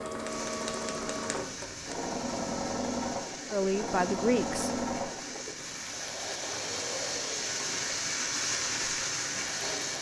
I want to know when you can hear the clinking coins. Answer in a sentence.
The clinking coins can't be heard in this clip.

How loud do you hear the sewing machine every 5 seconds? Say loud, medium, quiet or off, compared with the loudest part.
loud, medium.